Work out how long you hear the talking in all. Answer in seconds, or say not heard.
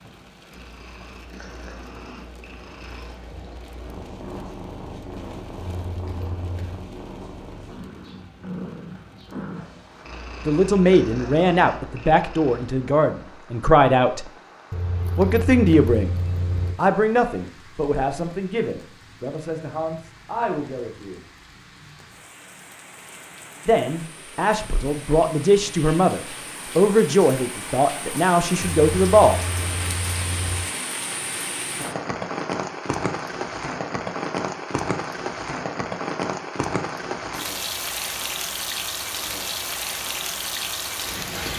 16 s.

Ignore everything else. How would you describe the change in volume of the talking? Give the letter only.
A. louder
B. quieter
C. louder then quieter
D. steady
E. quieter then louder
E.